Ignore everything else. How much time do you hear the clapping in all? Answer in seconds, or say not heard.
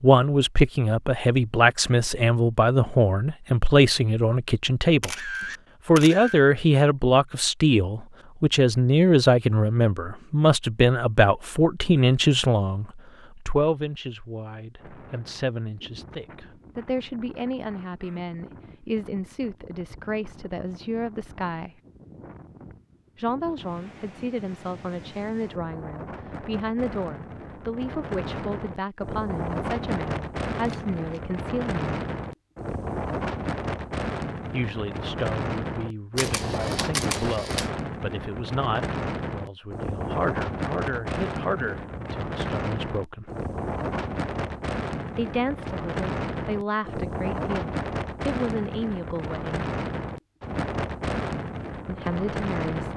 not heard.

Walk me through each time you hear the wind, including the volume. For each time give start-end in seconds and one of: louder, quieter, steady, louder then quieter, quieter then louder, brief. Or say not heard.
14.8-52.9 louder.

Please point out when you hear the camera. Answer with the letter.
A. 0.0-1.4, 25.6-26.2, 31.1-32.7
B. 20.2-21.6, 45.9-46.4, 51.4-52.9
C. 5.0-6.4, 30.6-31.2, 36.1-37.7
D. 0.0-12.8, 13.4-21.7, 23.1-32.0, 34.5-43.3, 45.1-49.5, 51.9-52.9
C.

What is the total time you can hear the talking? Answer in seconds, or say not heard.
44 s.